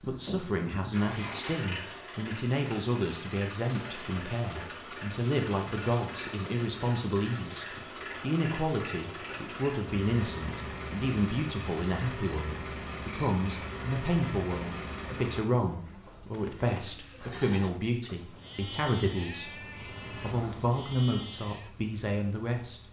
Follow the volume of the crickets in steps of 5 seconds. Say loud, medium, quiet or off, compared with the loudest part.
medium, loud, medium, medium, off.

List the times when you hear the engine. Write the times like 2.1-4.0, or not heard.
0.0-15.4, 18.1-22.8.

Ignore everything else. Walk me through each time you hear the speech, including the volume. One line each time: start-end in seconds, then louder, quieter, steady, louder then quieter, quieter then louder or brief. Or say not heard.
0.1-22.8 steady.